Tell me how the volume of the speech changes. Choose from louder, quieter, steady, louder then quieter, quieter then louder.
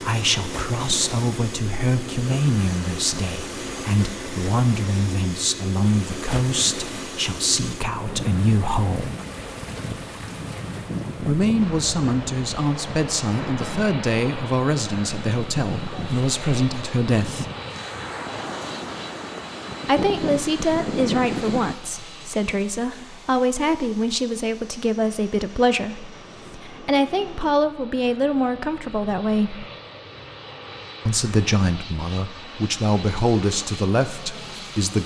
steady.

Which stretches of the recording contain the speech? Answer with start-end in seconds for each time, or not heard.
0.0-9.2, 11.2-17.5, 19.9-29.6, 31.1-35.0.